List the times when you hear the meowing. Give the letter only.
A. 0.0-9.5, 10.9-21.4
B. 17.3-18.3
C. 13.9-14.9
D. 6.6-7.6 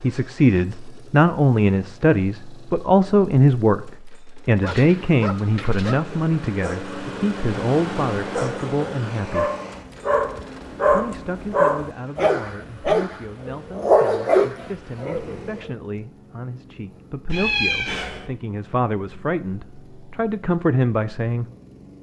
B.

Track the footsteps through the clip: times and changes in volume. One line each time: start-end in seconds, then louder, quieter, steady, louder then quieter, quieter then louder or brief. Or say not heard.
not heard.